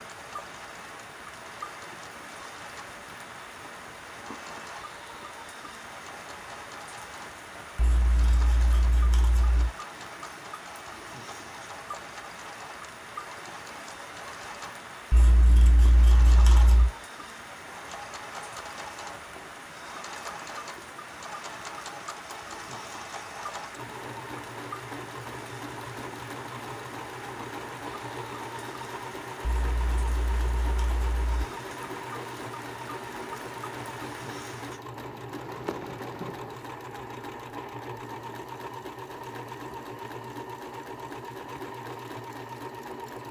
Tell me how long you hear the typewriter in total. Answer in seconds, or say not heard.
not heard.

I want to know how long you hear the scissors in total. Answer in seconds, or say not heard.
6 s.